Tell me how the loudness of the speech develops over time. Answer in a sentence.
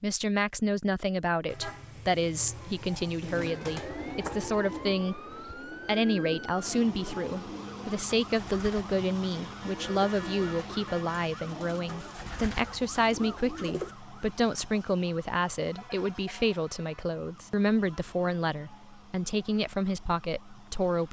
The volume of the speech stays about the same.